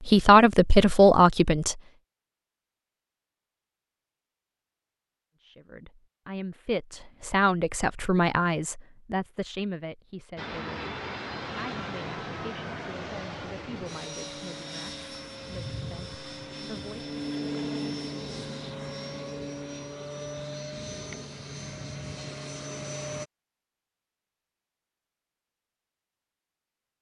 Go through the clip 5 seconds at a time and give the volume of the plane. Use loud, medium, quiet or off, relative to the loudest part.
off, off, loud, loud, loud, off.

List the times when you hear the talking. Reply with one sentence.
You can hear the talking from 0.0 to 1.8 s and from 5.4 to 17.1 s.